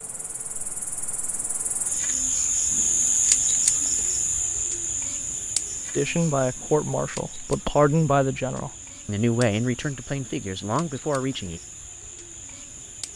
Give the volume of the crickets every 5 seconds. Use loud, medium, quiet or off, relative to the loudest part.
loud, medium, quiet.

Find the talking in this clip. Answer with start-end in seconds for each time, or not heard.
6.0-11.6.